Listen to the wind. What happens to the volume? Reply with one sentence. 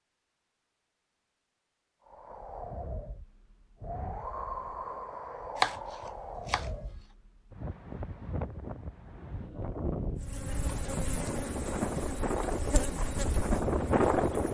The volume of the wind goes up.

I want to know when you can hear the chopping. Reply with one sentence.
The chopping can be heard from 5.5 to 6.7 s.